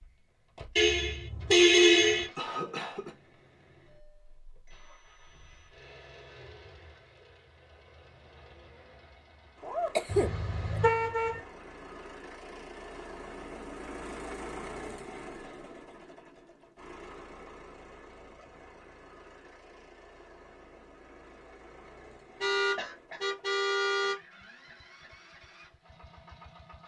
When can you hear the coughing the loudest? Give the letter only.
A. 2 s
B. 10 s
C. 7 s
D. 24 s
B.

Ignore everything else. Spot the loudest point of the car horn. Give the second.
2 s.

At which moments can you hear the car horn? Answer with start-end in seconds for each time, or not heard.
0.8-2.3, 10.1-11.4, 22.4-24.1.